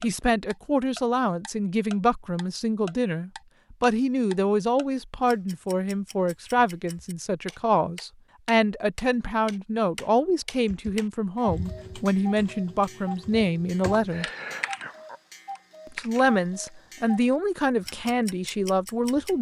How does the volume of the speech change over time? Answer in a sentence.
The loudness of the speech stays about the same.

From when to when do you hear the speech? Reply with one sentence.
You can hear the speech from 0.0 to 14.2 s and from 15.9 to 19.3 s.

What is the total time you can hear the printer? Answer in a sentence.
The printer can't be heard in this clip.